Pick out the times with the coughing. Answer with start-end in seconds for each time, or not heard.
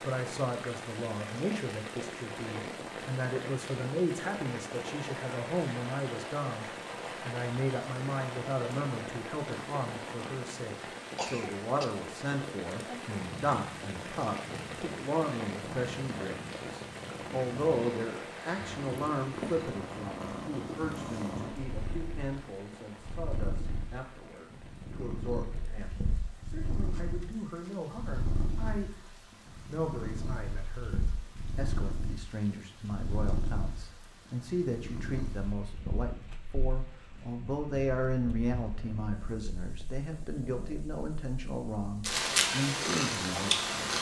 11.2-11.9.